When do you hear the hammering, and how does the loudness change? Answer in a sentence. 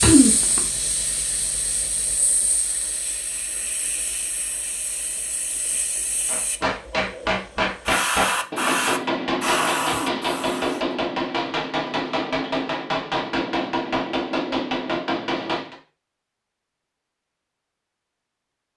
You can hear the hammering from 6.2 to 15.8 s, at a steady volume.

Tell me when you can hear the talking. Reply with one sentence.
The talking can't be heard in this clip.